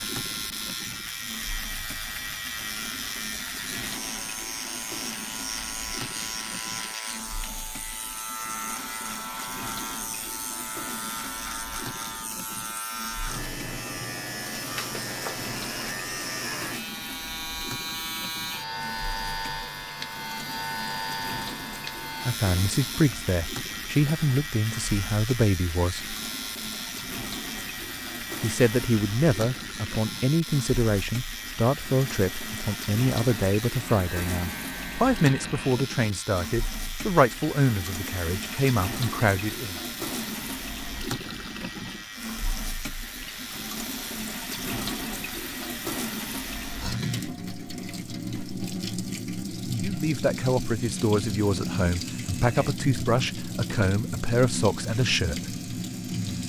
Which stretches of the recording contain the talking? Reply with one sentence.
You can hear the talking from 22.2 to 26.1 s, from 28.4 to 39.8 s and from 49.8 to 55.6 s.